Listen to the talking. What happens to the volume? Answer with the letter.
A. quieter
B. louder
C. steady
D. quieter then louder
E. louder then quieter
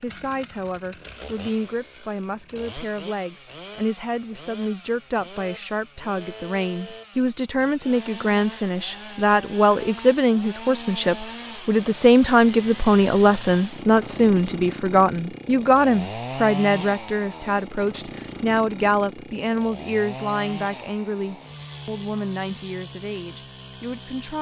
E.